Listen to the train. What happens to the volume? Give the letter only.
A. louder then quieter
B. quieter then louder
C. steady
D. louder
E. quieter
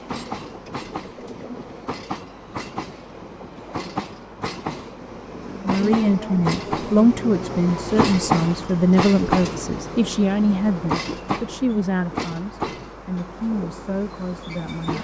A.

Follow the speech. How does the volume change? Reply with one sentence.
The volume of the speech goes down.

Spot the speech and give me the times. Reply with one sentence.
The speech can be heard from 5.5 to 14.9 s.